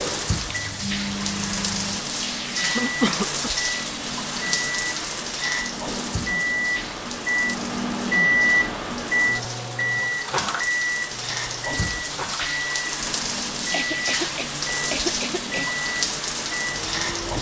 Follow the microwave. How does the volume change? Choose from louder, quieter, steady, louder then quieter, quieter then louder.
louder then quieter.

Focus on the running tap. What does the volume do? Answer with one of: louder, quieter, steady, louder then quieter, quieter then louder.
quieter then louder.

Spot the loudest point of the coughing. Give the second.
3 s.